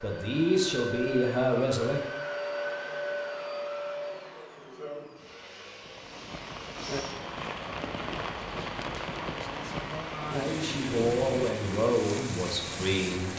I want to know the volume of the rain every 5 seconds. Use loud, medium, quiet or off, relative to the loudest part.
off, loud, loud.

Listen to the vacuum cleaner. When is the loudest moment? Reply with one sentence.
The volume of the vacuum cleaner peaks at 3 seconds.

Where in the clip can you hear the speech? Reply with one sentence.
You can hear the speech from 0.0 to 2.0 s and from 9.2 to 13.3 s.